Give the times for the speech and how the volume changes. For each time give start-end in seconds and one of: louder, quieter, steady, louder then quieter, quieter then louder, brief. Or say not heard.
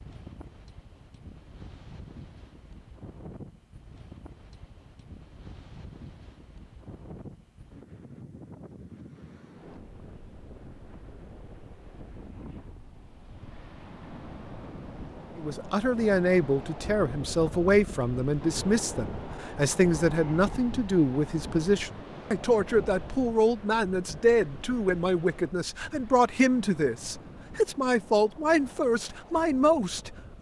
15.3-30.3 steady.